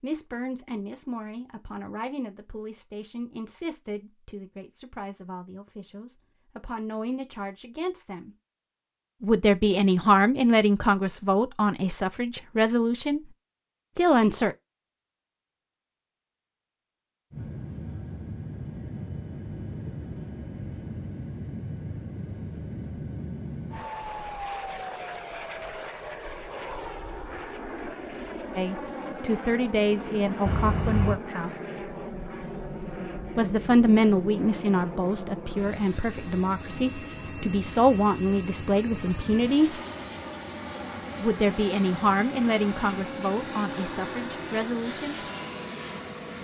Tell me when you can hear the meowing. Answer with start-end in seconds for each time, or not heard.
30.4-31.2.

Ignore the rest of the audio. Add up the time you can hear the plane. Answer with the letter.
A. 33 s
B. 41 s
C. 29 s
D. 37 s
C.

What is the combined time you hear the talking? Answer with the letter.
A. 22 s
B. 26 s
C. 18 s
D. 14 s
B.